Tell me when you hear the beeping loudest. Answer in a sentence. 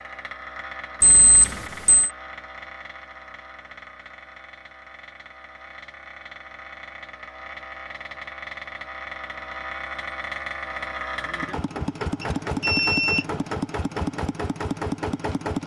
The loudest moment of the beeping is at 13 seconds.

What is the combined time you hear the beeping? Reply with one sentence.
The beeping can be heard for 2 seconds in total.